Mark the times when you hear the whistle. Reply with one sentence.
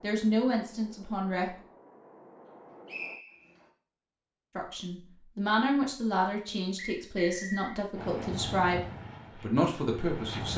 You can hear the whistle from 2.9 to 3.5 s and from 6.8 to 7.8 s.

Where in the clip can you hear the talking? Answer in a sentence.
You can hear the talking from 0.0 to 1.6 s and from 4.5 to 10.5 s.